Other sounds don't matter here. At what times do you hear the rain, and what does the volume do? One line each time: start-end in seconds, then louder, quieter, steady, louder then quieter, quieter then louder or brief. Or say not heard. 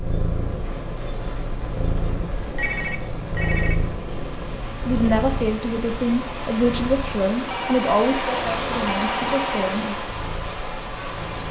0.0-11.4 louder.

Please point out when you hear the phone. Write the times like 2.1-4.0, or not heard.
2.4-3.8, 7.5-9.8.